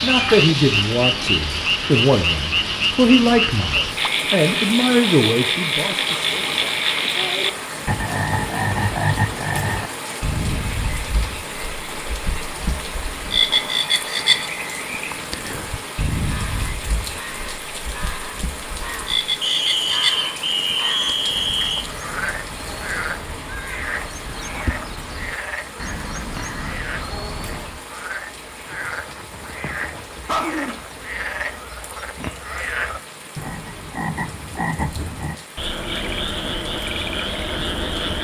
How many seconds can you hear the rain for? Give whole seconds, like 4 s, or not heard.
38 s.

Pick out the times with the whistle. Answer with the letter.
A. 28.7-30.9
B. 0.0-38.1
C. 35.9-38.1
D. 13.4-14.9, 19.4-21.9
D.